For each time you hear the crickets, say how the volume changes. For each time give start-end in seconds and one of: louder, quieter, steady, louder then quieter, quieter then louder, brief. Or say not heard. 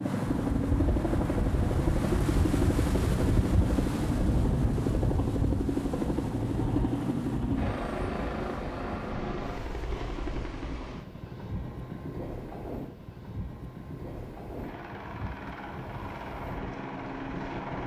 not heard.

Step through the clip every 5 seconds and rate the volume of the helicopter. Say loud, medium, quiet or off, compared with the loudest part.
loud, loud, quiet, medium.